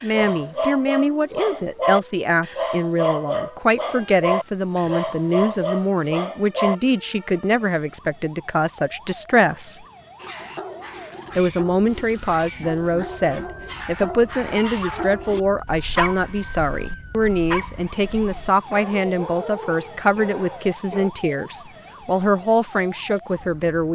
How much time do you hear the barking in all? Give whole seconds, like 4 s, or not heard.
18 s.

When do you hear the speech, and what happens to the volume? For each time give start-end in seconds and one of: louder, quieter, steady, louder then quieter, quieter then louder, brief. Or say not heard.
0.0-9.8 steady
11.3-23.9 steady.